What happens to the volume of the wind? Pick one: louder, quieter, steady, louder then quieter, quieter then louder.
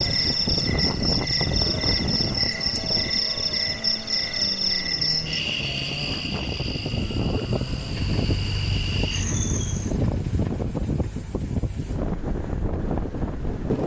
quieter then louder.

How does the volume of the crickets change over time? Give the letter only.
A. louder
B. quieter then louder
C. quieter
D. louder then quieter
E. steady
C.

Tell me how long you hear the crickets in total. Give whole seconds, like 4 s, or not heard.
10 s.